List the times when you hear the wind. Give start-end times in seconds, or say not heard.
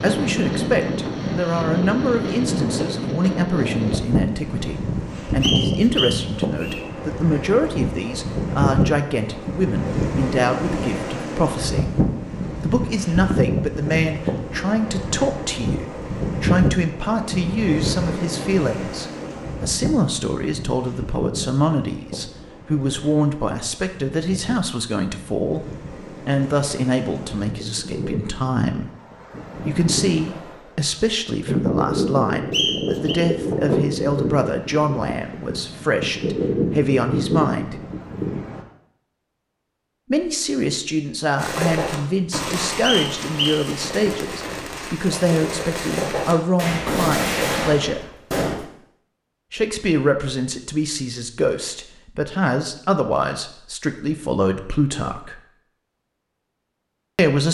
0.0-38.6.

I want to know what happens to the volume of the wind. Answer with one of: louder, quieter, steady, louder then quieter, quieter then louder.
quieter then louder.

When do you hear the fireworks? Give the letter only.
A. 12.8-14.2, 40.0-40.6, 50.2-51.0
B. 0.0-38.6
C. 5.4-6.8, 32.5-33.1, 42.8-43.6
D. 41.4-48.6
D.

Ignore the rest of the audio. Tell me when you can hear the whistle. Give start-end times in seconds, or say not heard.
5.4-6.8, 32.5-33.1, 42.8-43.6.